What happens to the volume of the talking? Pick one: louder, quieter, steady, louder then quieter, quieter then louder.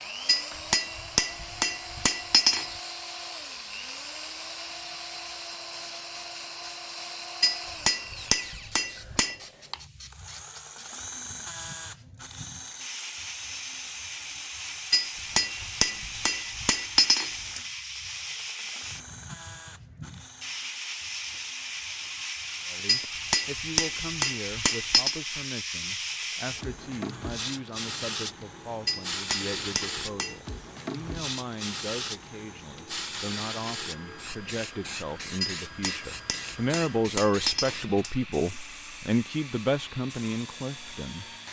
louder.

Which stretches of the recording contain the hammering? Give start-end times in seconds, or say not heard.
0.2-2.7, 7.4-9.3, 14.9-17.6, 22.9-25.2, 28.9-30.4, 35.4-38.1.